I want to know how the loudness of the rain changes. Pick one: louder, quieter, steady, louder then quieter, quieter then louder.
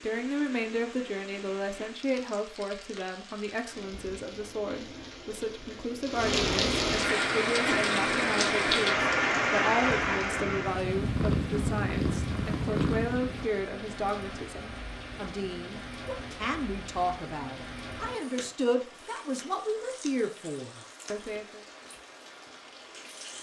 louder then quieter.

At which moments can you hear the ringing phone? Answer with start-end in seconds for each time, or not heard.
not heard.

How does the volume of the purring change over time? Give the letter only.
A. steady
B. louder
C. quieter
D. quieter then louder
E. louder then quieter
B.